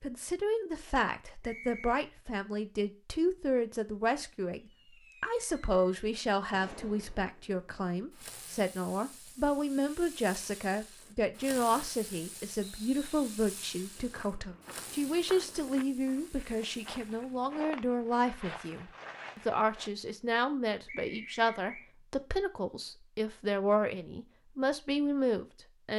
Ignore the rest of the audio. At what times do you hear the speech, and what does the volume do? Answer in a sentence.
You can hear the speech from 0.0 to 25.9 s, at a steady volume.